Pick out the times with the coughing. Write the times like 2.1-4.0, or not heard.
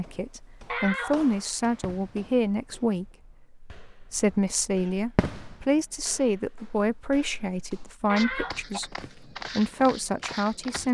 0.7-1.2, 8.1-8.8.